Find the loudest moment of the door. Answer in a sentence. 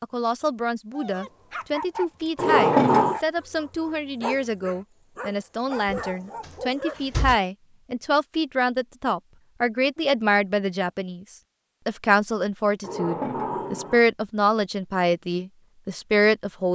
The loudest moment of the door is at 3 seconds.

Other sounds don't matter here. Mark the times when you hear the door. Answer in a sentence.
You can hear the door from 2.4 to 3.2 s, from 5.8 to 7.4 s and from 12.8 to 14.1 s.